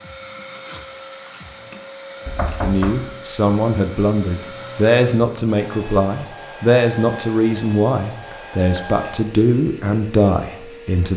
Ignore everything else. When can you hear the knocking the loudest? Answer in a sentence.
The volume of the knocking peaks at 3 seconds.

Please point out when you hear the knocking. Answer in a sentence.
You can hear the knocking from 2.2 to 3.0 s and from 8.3 to 8.9 s.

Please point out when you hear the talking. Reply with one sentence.
You can hear the talking from 2.6 to 11.1 s.